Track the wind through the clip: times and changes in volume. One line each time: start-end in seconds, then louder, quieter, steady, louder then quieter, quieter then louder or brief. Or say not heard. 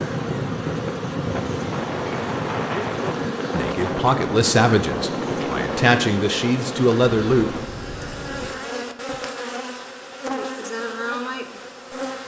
0.0-8.6 quieter.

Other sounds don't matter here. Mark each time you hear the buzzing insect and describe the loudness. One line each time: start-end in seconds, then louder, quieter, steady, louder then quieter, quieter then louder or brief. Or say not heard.
0.0-12.2 steady.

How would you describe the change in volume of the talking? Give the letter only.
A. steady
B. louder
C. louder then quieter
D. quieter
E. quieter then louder
E.